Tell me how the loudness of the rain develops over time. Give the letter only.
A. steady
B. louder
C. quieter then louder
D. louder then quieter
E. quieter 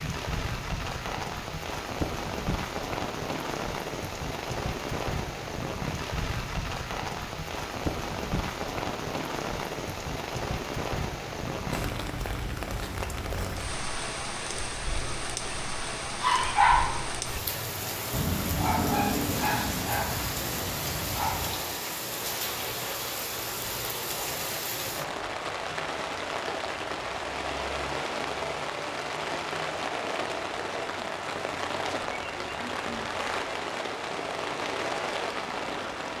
A.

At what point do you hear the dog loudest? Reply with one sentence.
The loudest moment of the dog is at 17 seconds.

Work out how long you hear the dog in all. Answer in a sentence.
The dog can be heard for 5 seconds in total.